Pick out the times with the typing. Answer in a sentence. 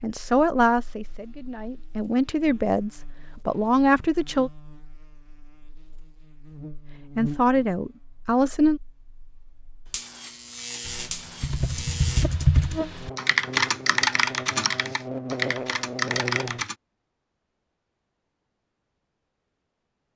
You can hear the typing from 10.8 to 16.8 s.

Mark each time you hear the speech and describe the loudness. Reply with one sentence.
The speech can be heard from 0.0 to 4.5 s, getting quieter then louder; and briefly from 7.2 to 8.8 s.